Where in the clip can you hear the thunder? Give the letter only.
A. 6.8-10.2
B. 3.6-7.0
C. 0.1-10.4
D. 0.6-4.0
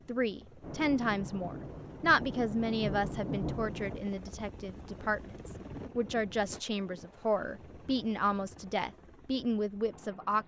D.